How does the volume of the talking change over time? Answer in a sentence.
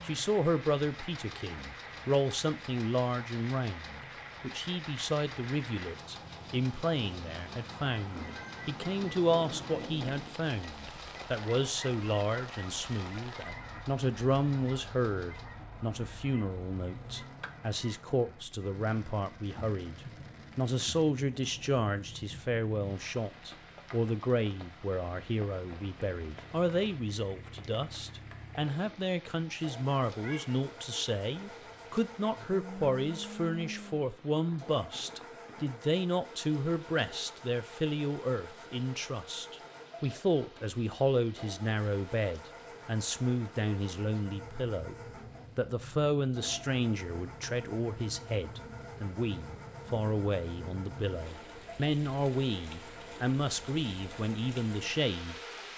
The volume of the talking stays about the same.